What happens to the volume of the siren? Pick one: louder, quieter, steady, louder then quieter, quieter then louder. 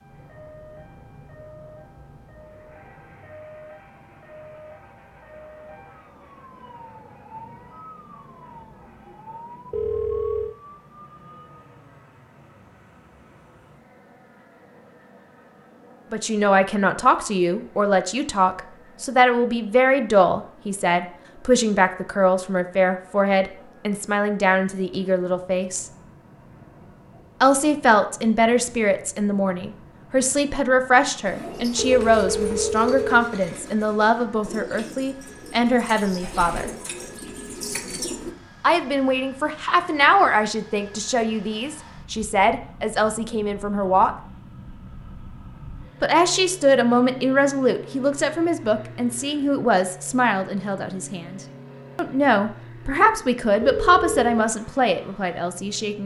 steady.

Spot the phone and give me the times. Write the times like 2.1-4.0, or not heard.
9.7-10.6, 31.8-33.4, 53.6-54.3.